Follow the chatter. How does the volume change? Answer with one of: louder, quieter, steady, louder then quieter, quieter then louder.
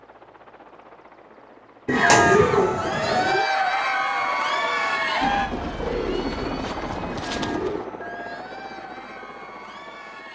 quieter.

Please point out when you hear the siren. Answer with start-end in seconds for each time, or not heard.
not heard.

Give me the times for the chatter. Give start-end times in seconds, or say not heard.
1.9-10.2.